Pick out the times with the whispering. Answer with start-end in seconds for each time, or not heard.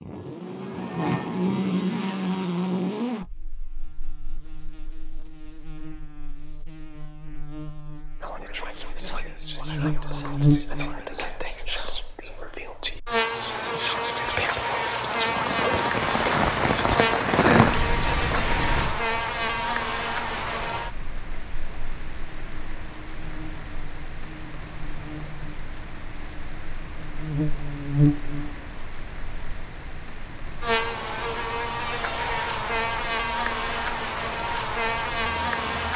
8.2-18.6.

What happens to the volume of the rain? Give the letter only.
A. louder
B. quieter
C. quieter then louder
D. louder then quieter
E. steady
B.